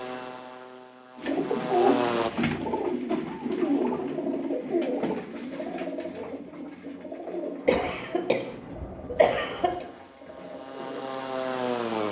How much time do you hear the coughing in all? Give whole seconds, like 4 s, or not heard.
2 s.